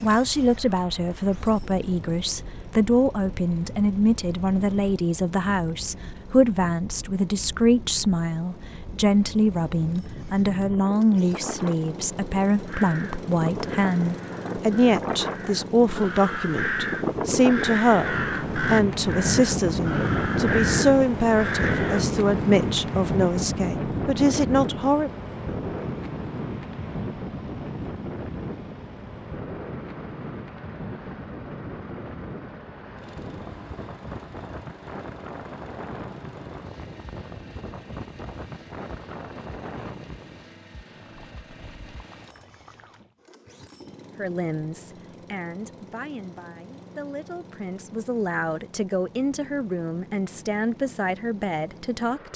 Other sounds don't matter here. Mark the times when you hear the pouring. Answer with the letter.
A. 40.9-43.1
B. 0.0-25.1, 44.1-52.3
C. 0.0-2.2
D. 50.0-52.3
A.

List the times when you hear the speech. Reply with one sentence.
The speech can be heard from 0.0 to 25.1 s and from 44.1 to 52.3 s.